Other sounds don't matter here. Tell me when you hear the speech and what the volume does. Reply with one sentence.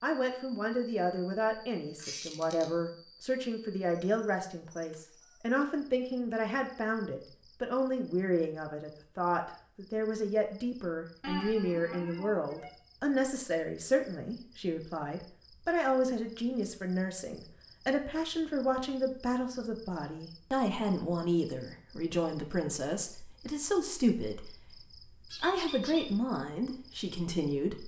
You can hear the speech from 0.0 to 27.8 s, at a steady volume.